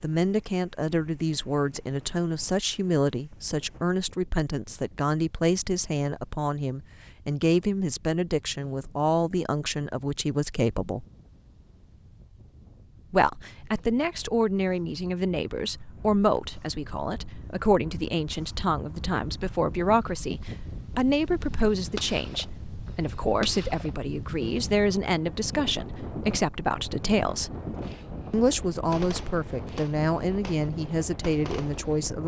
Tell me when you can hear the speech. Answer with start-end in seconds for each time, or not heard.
0.0-11.1, 13.1-27.6, 28.3-32.2.